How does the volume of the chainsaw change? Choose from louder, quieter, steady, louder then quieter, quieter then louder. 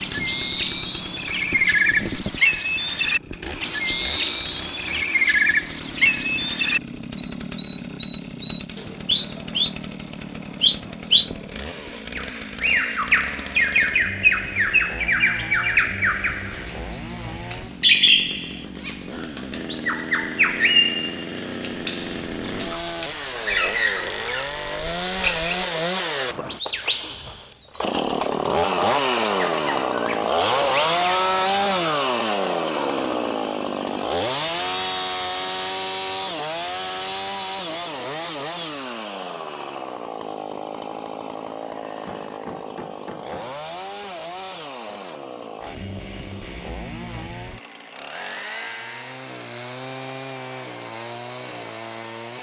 louder then quieter.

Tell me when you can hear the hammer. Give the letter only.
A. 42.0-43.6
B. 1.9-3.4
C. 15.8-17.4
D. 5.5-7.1
A.